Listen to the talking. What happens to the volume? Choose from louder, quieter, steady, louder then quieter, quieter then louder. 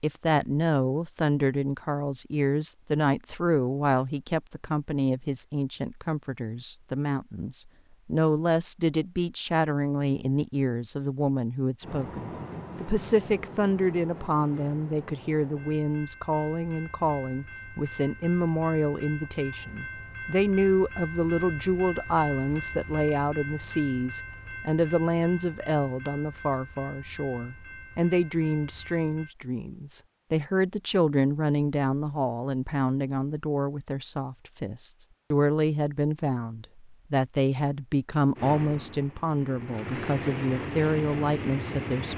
steady.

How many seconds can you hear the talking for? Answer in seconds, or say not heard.
42 s.